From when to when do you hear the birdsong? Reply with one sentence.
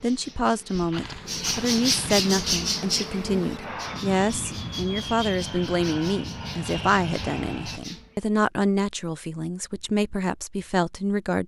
You can hear the birdsong from 0.0 to 8.2 s.